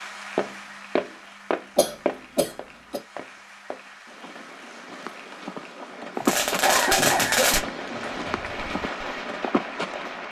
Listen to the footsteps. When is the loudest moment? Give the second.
6 s.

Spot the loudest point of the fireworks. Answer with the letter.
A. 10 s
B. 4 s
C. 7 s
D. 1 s
C.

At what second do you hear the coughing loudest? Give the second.
7 s.